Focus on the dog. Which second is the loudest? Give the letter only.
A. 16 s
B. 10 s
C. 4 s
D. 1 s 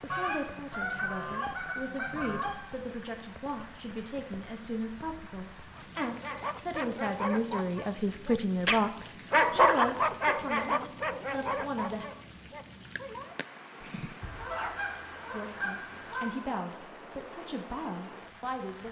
B.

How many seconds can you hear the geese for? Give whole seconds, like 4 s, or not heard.
5 s.